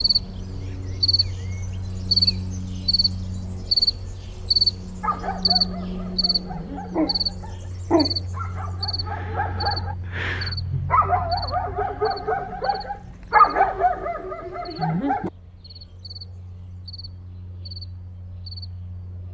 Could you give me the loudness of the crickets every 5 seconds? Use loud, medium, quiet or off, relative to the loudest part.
loud, medium, quiet, quiet.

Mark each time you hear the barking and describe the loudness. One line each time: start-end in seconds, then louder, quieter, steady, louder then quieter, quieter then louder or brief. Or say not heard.
5.0-15.3 louder.